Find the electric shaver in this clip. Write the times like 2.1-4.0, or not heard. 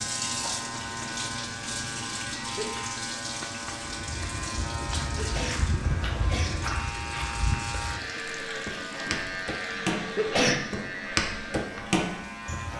0.0-12.7.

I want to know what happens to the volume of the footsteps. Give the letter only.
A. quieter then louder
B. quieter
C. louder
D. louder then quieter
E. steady
C.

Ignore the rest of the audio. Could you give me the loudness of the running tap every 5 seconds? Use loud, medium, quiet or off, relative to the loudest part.
loud, medium, medium.